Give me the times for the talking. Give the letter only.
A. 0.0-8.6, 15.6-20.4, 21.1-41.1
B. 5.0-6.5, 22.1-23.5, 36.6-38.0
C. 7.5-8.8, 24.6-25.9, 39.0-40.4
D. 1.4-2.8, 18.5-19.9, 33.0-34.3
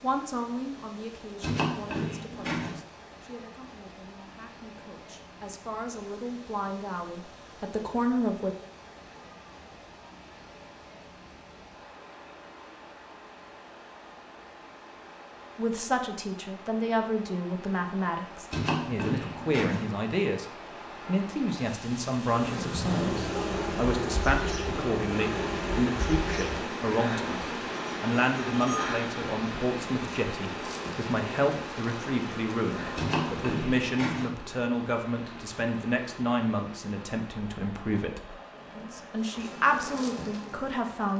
A.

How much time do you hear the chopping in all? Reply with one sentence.
The chopping can be heard for 4 seconds in total.